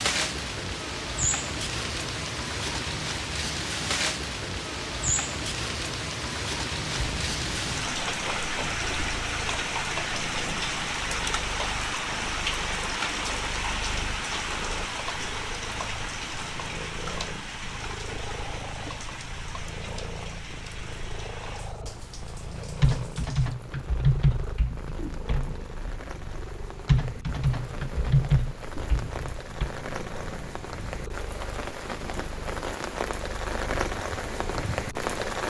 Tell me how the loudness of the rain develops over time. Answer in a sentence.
The loudness of the rain goes down, then up.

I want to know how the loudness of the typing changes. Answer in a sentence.
The loudness of the typing goes down, then up.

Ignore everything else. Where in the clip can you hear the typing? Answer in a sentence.
You can hear the typing from 22.8 to 29.7 s.